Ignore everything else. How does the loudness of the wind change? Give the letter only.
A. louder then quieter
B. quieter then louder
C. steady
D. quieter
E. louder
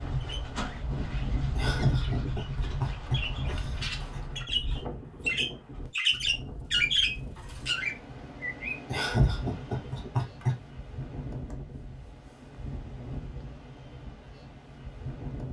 D.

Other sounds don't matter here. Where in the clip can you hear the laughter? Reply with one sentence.
The laughter can be heard from 1.6 to 4.2 s and from 8.9 to 10.6 s.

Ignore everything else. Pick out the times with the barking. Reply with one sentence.
The barking can't be heard in this clip.